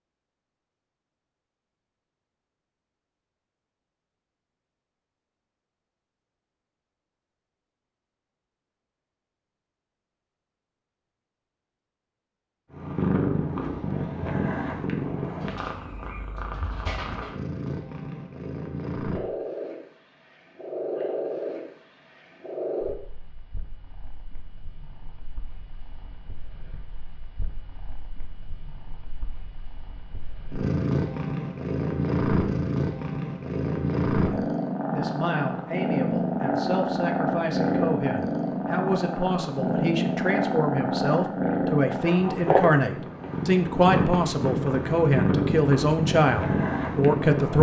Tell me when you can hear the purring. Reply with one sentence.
The purring can be heard from 12.7 to 47.5 s.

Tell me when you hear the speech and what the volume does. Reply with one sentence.
You can hear the speech from 34.2 to 47.5 s, getting louder.